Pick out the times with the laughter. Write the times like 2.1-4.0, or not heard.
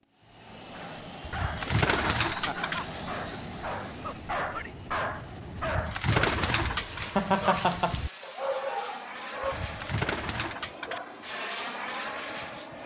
1.6-2.6, 7.2-8.0.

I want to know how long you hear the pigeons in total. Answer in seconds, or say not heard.
5 s.